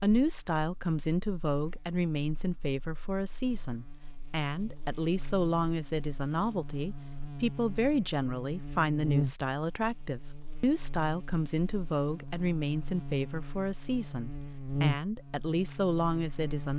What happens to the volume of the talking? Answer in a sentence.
The volume of the talking stays about the same.